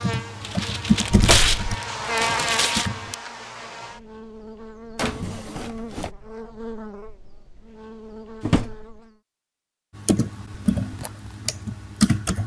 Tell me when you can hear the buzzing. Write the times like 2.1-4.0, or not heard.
0.0-9.2.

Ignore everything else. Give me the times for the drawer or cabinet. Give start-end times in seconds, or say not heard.
1.1-1.7, 5.0-6.1, 8.4-8.9.